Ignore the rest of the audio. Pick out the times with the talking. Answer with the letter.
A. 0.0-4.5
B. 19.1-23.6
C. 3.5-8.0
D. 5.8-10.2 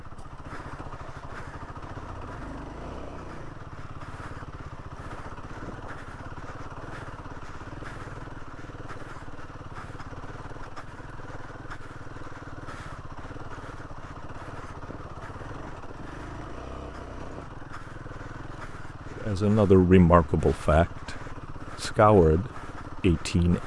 B.